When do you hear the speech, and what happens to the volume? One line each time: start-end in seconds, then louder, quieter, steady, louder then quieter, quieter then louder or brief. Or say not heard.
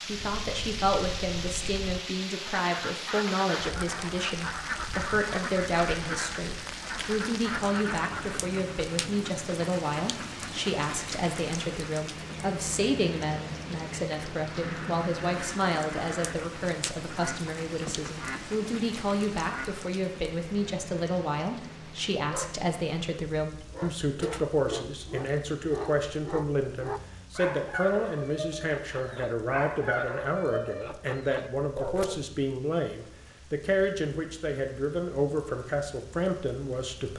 0.1-37.1 steady.